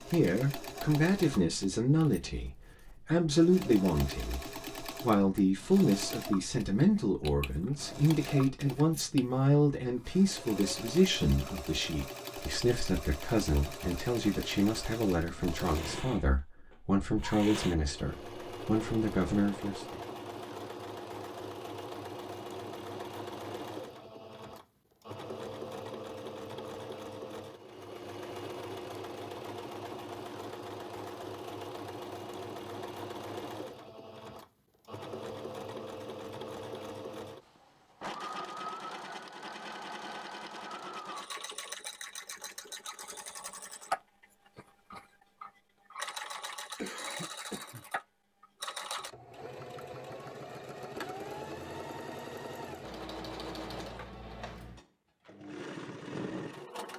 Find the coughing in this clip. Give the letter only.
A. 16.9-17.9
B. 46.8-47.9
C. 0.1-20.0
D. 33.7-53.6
B.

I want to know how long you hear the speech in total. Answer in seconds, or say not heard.
20 s.